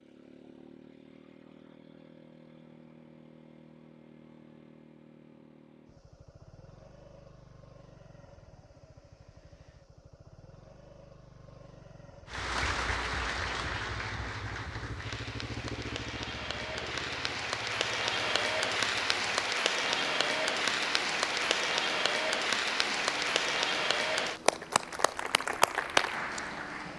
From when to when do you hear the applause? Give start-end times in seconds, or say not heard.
12.2-26.9.